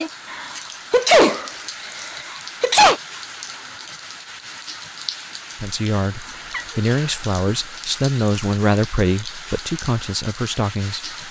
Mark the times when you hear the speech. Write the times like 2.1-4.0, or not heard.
5.6-11.2.